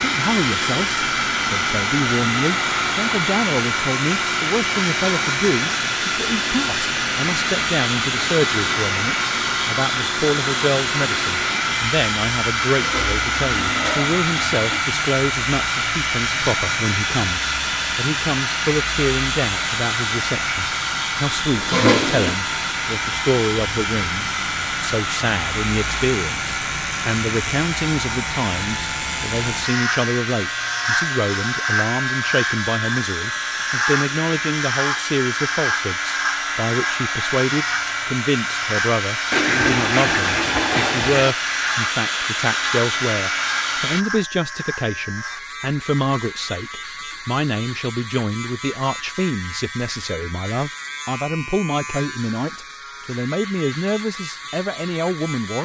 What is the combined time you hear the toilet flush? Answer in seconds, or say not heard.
5 s.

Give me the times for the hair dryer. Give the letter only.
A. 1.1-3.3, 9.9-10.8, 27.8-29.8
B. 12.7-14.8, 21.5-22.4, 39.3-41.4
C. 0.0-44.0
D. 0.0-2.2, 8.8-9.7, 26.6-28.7
C.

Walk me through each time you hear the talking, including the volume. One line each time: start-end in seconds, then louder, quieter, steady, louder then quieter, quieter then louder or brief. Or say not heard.
0.0-55.6 steady.